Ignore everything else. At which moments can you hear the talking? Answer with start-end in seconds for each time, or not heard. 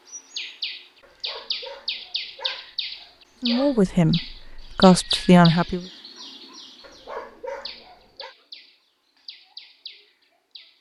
3.4-5.8.